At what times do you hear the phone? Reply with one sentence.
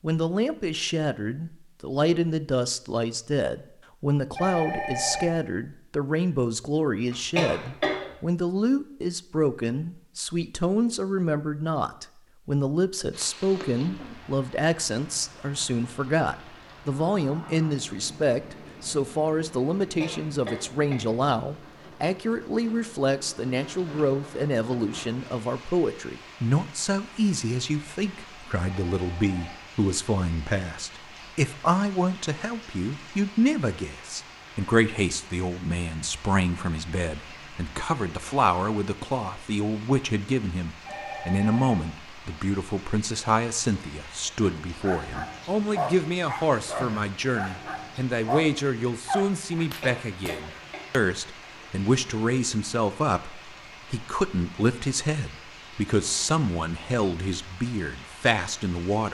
The phone can be heard from 4.3 to 5.2 s, from 28.6 to 29.6 s and from 40.8 to 41.8 s.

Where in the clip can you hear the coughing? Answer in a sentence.
The coughing can be heard from 7.1 to 8.1 s, from 20.0 to 21.1 s and from 49.6 to 50.9 s.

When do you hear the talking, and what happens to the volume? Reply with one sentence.
You can hear the talking from 0.0 to 59.0 s, at a steady volume.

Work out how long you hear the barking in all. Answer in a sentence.
You can hear the barking for 6 seconds altogether.